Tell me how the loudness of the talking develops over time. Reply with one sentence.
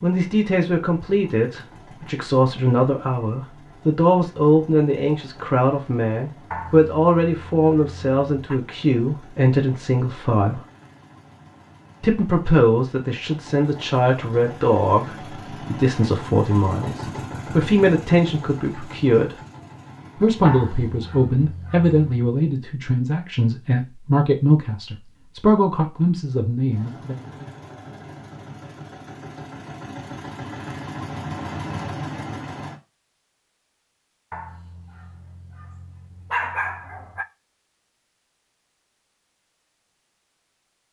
The volume of the talking stays about the same.